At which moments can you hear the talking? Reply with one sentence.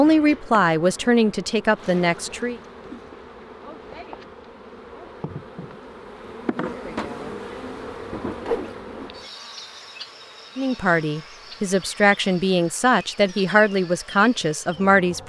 The talking can be heard from 0.0 to 2.6 s and from 10.6 to 15.2 s.